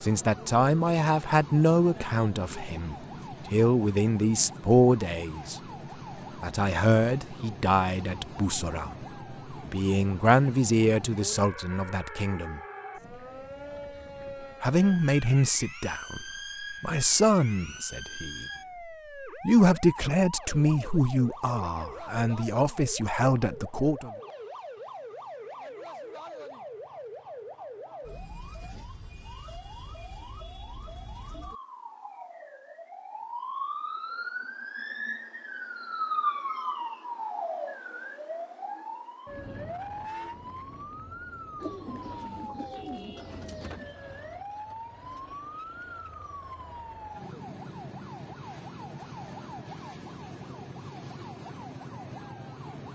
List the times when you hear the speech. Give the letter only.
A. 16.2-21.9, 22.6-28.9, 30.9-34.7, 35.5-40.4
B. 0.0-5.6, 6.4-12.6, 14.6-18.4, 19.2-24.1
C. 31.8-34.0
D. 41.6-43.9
B.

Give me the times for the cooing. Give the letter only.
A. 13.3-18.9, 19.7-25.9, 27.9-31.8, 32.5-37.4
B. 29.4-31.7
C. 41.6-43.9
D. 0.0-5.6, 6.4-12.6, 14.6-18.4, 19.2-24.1
C.